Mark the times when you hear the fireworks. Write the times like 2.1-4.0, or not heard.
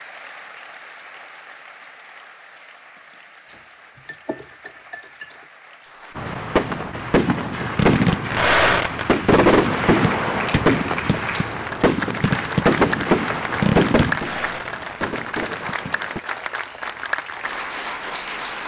6.2-16.2.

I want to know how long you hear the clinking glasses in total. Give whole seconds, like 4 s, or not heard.
2 s.